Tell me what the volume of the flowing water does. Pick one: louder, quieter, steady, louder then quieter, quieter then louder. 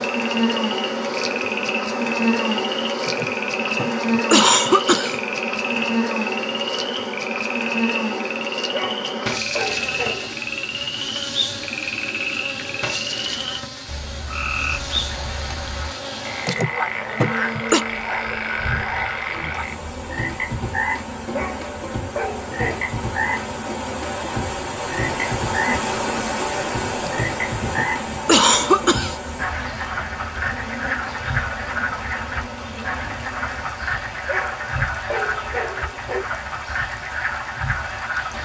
louder then quieter.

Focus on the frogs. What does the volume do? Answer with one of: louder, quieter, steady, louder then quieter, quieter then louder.
steady.